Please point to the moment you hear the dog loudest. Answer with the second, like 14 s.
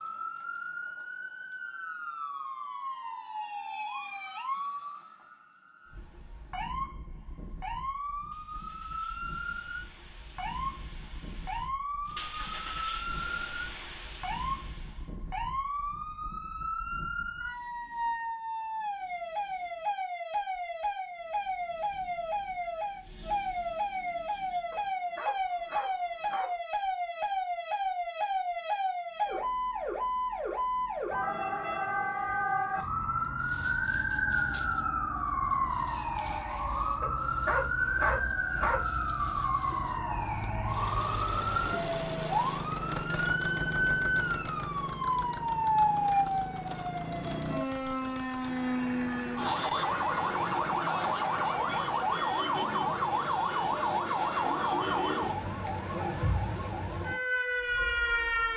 38 s.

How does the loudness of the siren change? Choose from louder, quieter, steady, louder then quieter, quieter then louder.
louder.